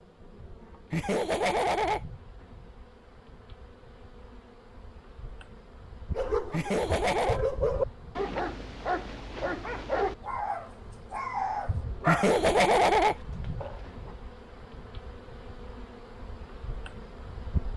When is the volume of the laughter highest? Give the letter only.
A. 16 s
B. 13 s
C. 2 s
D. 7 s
B.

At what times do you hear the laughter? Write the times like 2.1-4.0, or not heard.
0.9-2.0, 6.5-7.4, 12.1-13.2.